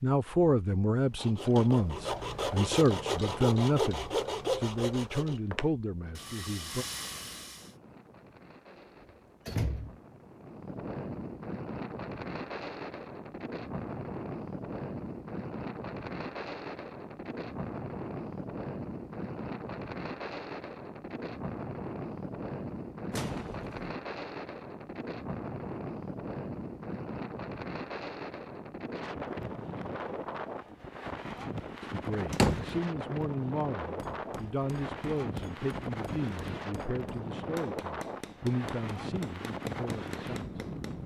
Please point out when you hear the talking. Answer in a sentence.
You can hear the talking from 0.0 to 6.8 s and from 31.9 to 40.5 s.